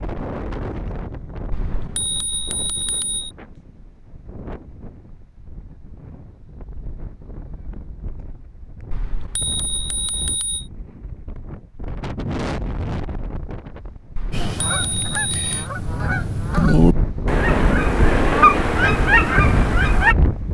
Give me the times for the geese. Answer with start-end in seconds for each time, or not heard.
14.3-20.1.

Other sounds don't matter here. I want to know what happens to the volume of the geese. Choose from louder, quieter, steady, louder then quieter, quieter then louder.
louder.